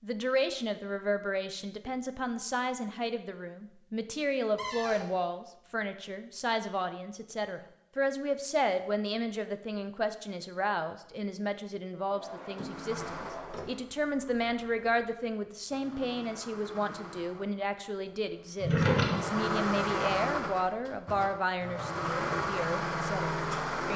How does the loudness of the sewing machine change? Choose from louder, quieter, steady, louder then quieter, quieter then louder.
louder.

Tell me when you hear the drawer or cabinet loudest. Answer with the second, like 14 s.
19 s.